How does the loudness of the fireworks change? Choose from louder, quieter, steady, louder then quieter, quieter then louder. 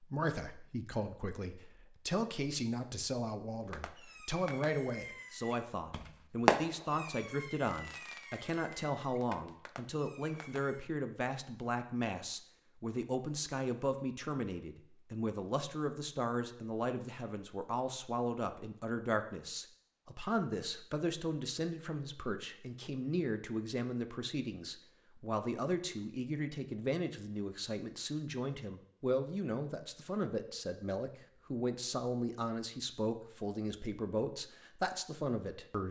louder then quieter.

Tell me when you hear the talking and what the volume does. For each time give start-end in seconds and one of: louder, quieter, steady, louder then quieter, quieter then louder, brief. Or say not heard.
0.0-35.8 steady.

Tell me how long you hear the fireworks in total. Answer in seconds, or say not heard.
7 s.